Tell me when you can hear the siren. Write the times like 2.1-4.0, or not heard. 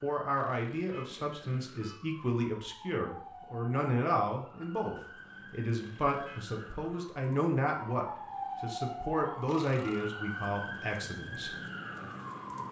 0.0-12.6.